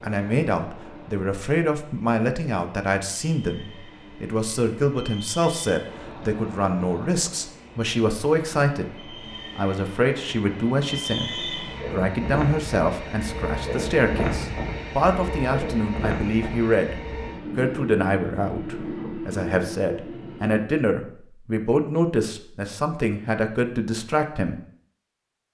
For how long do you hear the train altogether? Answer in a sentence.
The train can be heard for 21 seconds in total.